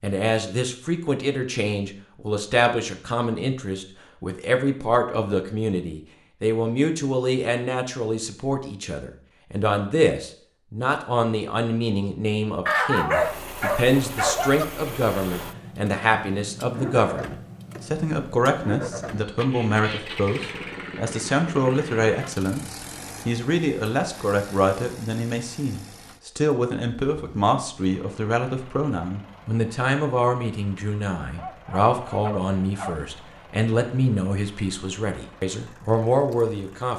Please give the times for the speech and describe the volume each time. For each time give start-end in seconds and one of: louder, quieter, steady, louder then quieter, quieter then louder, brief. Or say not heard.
0.0-36.9 steady.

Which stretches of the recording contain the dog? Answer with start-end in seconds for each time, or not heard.
12.7-14.7, 31.4-33.0.